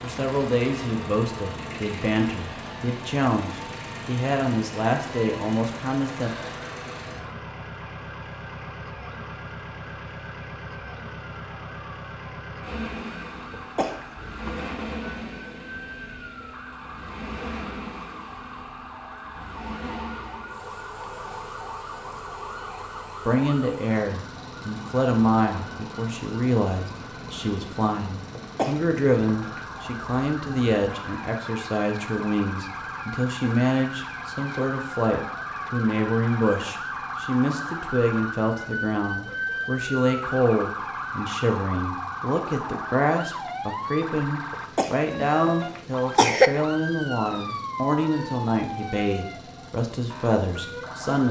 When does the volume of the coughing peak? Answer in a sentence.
The loudest moment of the coughing is at 46 seconds.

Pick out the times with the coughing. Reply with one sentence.
You can hear the coughing from 13.5 to 14.6 s, from 28.4 to 29.6 s and from 44.5 to 46.5 s.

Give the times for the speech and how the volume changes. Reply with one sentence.
The speech can be heard from 0.0 to 6.3 s, at a steady volume; and from 23.2 to 51.2 s, at a steady volume.